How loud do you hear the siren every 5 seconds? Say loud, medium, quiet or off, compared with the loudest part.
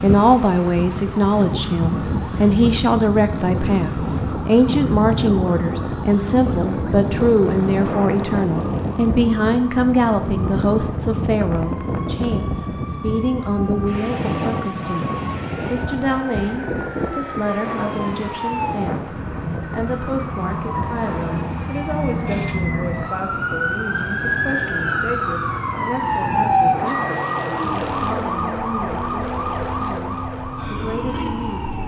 quiet, quiet, quiet, medium, loud, loud, medium.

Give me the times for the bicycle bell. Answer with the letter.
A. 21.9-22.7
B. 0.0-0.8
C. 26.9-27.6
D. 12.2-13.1
C.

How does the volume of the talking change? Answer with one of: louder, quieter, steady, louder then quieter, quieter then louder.
quieter.